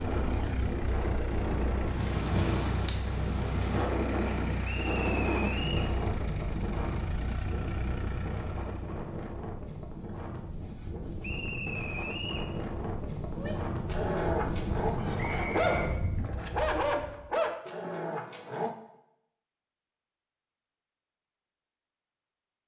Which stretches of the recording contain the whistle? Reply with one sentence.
You can hear the whistle from 4.7 to 5.9 s, from 11.2 to 12.5 s and from 15.2 to 15.9 s.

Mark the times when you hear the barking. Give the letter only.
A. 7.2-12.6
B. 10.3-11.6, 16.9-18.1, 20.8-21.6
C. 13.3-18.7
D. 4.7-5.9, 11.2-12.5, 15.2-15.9
C.